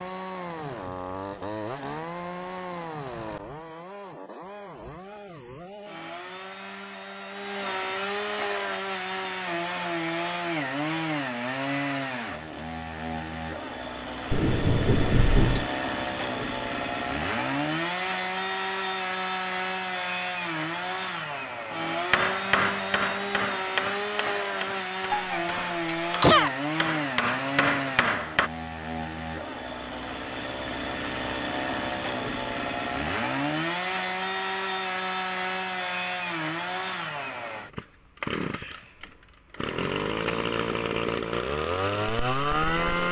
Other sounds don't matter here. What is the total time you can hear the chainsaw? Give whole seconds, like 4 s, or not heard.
43 s.